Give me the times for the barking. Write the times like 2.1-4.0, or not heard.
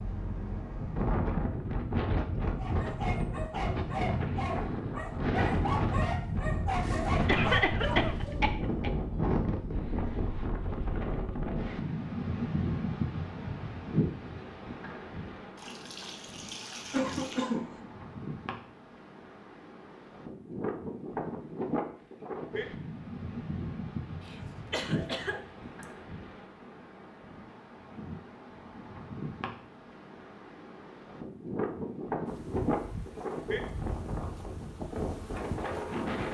2.5-8.4.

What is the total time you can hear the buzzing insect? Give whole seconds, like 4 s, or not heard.
4 s.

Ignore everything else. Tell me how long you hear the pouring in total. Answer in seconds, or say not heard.
2 s.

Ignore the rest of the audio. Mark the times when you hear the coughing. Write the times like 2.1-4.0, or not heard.
7.2-8.9, 16.9-17.8, 24.2-25.9.